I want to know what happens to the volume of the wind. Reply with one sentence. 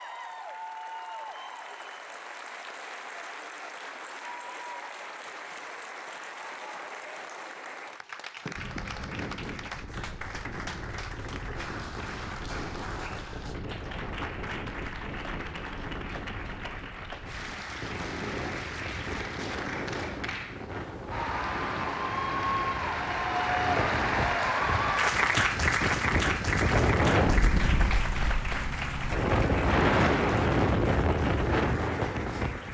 The loudness of the wind goes up.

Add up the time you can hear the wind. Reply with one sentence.
You can hear the wind for 24 seconds altogether.